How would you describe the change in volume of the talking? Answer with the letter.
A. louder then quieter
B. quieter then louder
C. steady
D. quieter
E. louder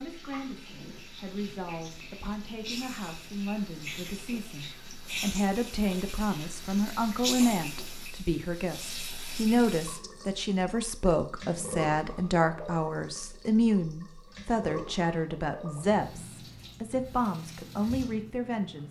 E.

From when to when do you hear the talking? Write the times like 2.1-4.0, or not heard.
0.0-18.8.